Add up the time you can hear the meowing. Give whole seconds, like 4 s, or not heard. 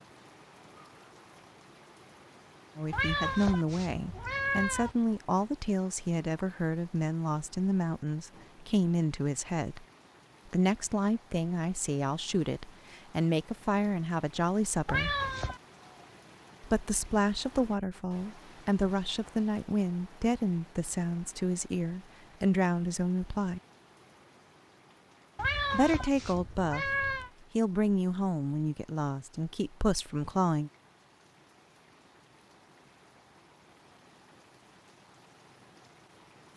5 s.